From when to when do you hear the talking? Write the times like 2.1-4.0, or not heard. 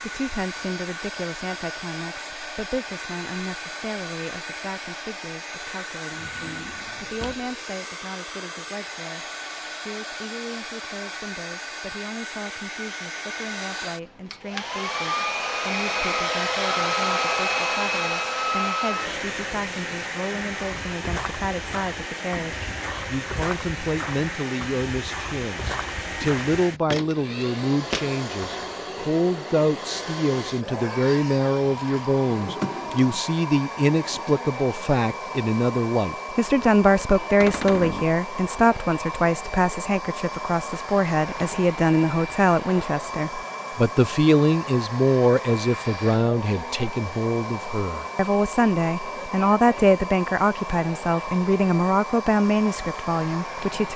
0.0-53.9.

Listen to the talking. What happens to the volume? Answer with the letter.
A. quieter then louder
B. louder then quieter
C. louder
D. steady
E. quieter
C.